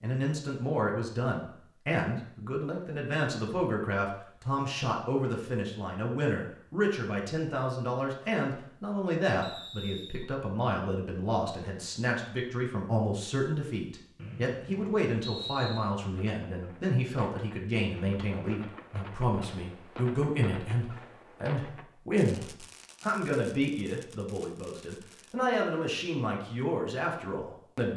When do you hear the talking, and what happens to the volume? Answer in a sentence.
The talking can be heard from 0.0 to 27.9 s, at a steady volume.